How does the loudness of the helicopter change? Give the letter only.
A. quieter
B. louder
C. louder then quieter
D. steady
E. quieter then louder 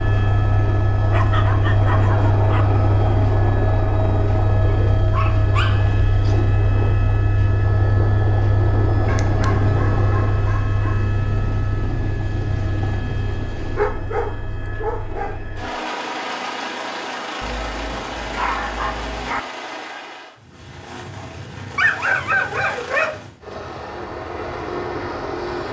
A.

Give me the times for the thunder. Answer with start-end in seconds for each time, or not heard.
9.0-13.8.